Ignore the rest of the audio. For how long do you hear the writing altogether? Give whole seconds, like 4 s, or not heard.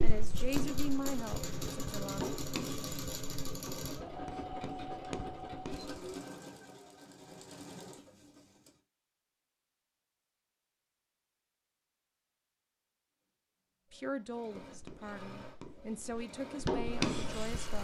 9 s.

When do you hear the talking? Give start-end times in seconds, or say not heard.
0.0-2.2, 13.9-17.7.